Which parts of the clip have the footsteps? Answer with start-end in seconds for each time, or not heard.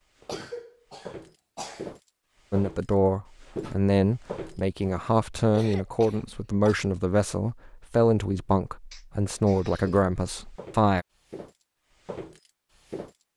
0.1-4.6, 9.8-13.2.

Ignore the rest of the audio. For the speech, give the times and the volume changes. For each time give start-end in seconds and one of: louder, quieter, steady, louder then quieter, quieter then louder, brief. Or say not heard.
2.5-11.1 steady.